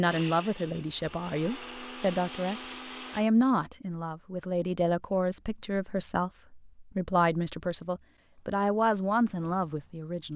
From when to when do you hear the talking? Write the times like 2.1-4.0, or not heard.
0.0-10.3.